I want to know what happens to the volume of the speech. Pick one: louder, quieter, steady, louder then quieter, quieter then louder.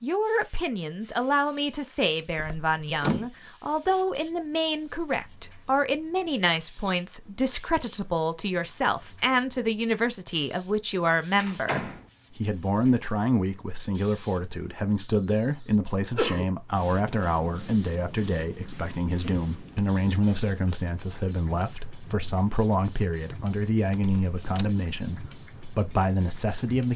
steady.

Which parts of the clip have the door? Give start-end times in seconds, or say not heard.
2.4-3.3, 11.3-12.1, 23.9-24.7.